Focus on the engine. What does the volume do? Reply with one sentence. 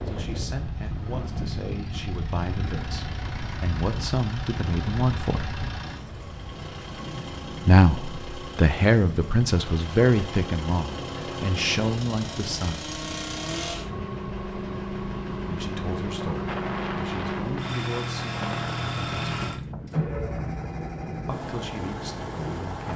The volume of the engine goes up.